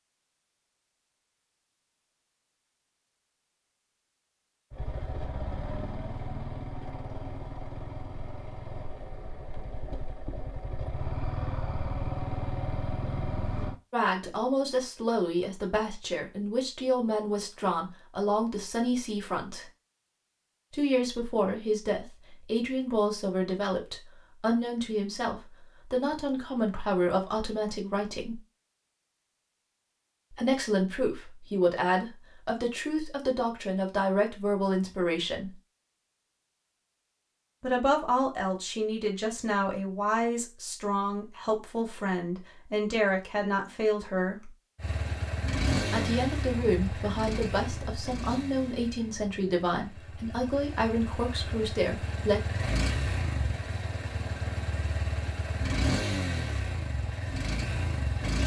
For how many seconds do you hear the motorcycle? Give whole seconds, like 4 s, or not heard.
23 s.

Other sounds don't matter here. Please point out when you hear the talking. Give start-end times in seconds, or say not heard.
13.9-19.6, 20.7-28.4, 30.3-35.5, 37.6-44.5, 45.9-52.4.